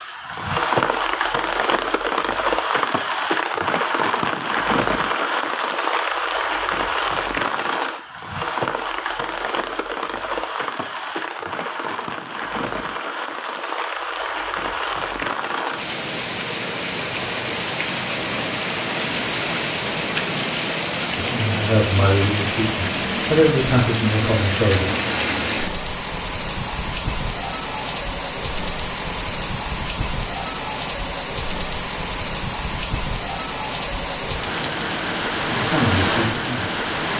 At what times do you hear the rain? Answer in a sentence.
You can hear the rain from 0.0 to 37.1 s.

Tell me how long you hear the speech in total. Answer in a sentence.
You can hear the speech for 5 seconds altogether.